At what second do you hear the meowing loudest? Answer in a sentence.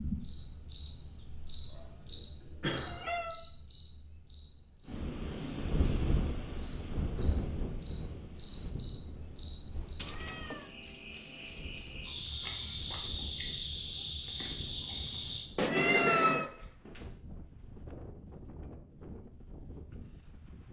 The loudest moment of the meowing is at 16 seconds.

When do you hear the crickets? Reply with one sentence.
The crickets can be heard from 0.0 to 15.4 s.